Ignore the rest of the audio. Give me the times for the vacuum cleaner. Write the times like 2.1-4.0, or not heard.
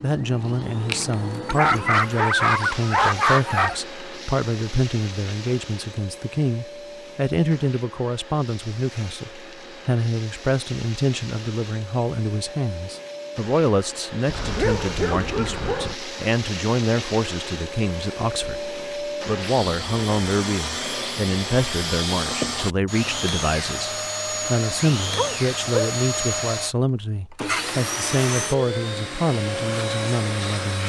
0.0-30.8.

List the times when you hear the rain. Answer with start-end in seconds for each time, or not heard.
not heard.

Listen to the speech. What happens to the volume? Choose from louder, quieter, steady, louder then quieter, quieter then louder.
steady.